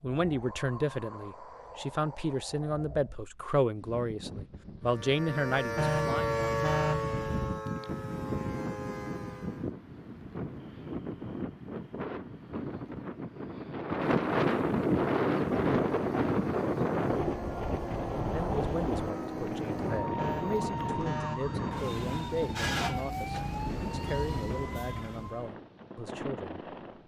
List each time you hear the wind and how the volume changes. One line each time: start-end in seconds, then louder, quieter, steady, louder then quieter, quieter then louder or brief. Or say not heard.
0.1-27.0 louder then quieter.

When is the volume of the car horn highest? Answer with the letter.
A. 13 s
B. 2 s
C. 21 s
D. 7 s
D.